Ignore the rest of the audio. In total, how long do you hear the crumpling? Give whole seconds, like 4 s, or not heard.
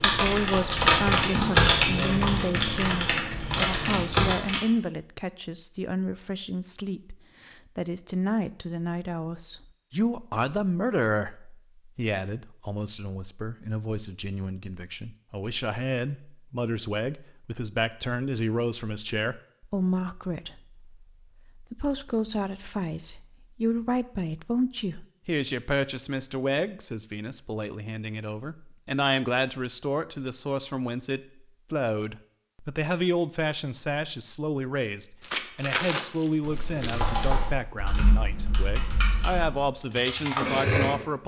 2 s.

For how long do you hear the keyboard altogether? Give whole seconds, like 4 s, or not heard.
9 s.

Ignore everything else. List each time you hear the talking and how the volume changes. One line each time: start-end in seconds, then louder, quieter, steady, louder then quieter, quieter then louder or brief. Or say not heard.
0.0-41.2 steady.